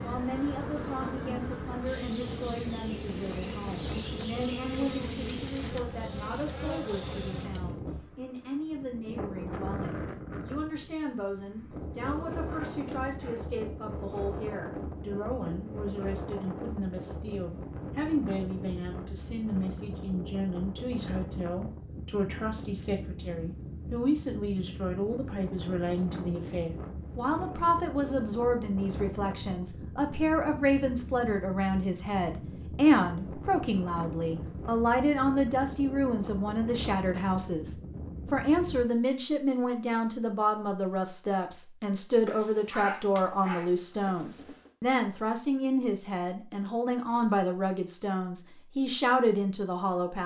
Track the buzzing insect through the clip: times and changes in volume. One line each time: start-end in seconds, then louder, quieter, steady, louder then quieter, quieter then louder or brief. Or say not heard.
0.0-7.8 steady.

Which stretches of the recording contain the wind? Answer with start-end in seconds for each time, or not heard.
0.0-38.9.